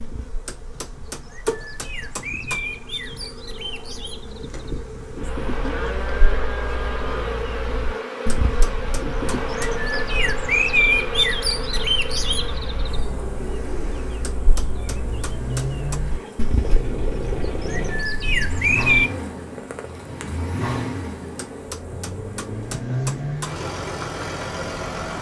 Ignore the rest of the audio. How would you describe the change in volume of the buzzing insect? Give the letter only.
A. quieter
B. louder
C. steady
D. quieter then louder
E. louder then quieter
E.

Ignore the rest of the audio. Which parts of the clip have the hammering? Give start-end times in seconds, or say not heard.
0.5-2.7, 8.4-9.8, 14.2-16.0, 21.4-23.6.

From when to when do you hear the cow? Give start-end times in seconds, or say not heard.
5.6-7.3.